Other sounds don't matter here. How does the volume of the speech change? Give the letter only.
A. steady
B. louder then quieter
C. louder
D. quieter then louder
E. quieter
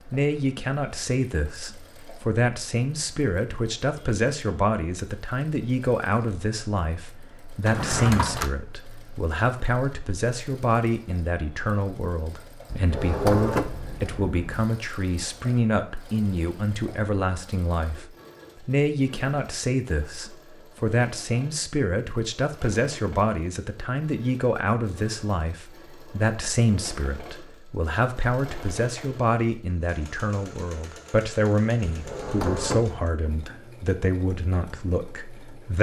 A.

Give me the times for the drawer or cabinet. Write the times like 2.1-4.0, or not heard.
7.7-8.5, 12.7-14.7, 31.9-33.0.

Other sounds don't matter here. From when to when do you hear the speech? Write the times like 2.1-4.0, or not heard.
0.1-35.7.